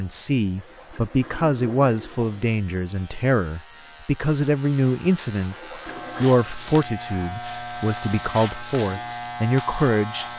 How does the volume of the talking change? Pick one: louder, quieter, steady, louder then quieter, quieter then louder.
steady.